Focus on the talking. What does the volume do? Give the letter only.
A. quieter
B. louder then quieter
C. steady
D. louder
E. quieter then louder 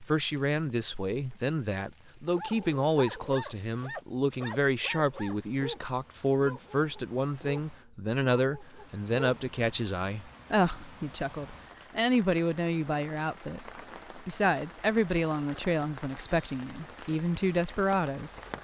C.